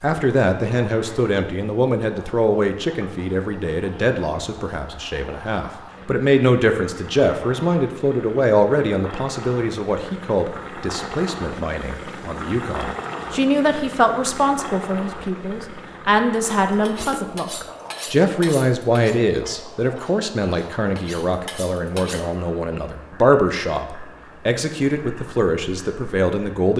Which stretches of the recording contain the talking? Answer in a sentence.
The talking can be heard from 0.0 to 26.7 s.